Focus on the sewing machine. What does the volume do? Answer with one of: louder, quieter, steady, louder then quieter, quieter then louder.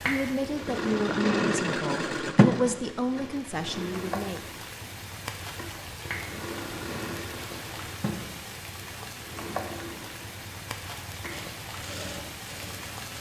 quieter.